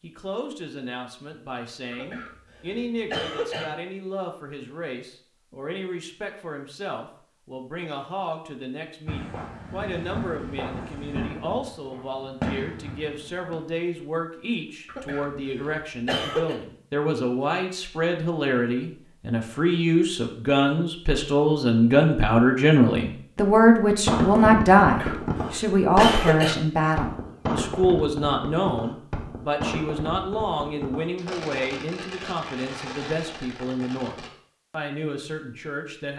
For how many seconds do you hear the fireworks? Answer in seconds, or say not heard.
15 s.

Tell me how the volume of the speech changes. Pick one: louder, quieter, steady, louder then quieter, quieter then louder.
louder then quieter.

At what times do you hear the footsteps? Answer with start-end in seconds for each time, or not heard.
not heard.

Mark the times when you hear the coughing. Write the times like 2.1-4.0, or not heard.
1.9-3.6, 14.8-16.6, 24.8-26.6.